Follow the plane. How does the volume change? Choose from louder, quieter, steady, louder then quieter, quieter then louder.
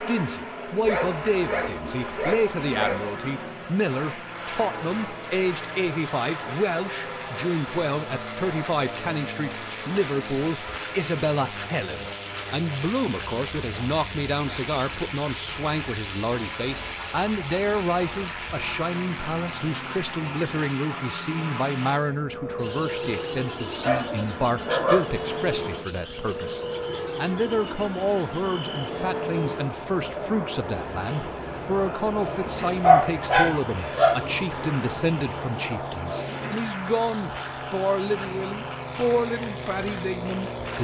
steady.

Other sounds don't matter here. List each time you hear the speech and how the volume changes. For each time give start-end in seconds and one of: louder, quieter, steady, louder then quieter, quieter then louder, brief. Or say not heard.
0.0-40.7 steady.